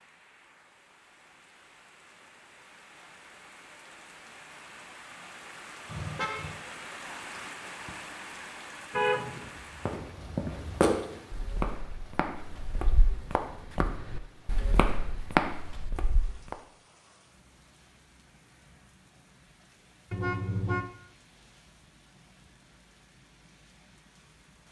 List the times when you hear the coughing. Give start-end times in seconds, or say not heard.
not heard.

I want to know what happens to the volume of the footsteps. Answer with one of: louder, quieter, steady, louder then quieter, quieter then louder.
quieter then louder.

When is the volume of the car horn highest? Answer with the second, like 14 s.
9 s.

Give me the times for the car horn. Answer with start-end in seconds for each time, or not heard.
5.8-6.6, 8.9-9.5, 20.1-20.9.